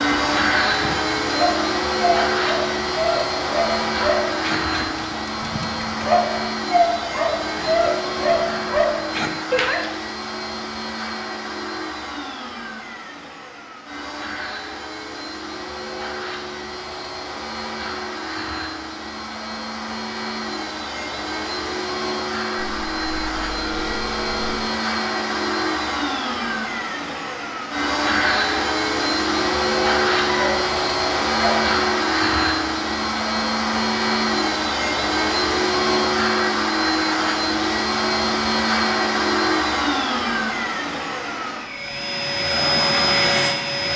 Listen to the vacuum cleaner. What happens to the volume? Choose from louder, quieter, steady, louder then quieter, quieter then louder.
quieter then louder.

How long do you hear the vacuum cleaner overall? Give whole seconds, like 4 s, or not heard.
44 s.